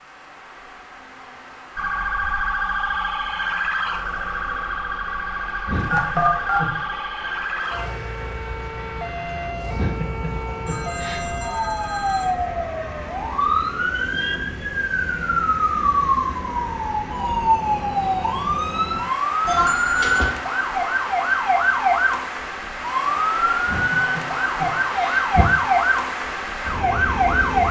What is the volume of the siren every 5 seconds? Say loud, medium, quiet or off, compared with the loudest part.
medium, medium, medium, loud, loud, loud.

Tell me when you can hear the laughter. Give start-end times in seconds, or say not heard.
5.7-6.7, 9.7-11.2, 23.6-25.4.